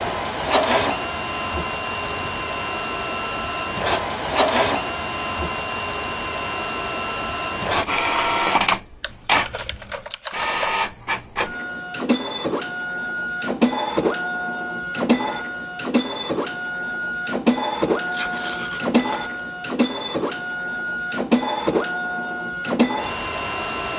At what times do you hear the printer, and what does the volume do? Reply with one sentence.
You can hear the printer from 0.0 to 23.9 s, at a steady volume.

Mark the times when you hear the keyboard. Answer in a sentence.
You can hear the keyboard from 9.0 to 10.8 s.